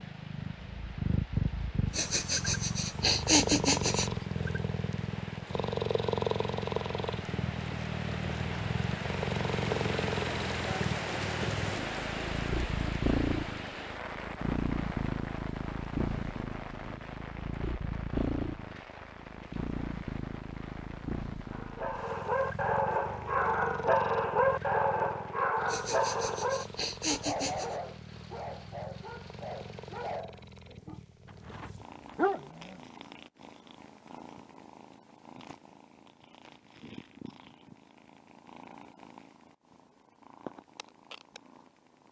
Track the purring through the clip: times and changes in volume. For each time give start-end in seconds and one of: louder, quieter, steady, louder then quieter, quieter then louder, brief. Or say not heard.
0.0-42.0 quieter.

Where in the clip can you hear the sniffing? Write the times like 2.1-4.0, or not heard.
1.9-4.1, 25.6-27.8.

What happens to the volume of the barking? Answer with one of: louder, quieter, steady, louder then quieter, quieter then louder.
quieter then louder.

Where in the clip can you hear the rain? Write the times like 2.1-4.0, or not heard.
0.0-30.2.